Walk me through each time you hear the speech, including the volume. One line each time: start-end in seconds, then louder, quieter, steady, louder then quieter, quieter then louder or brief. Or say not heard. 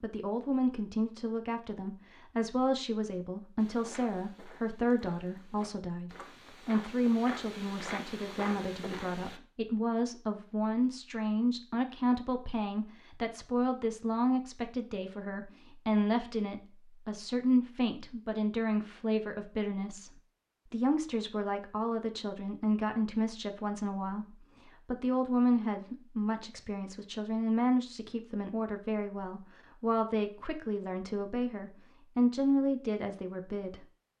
0.0-33.9 steady.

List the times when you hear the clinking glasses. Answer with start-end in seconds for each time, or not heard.
not heard.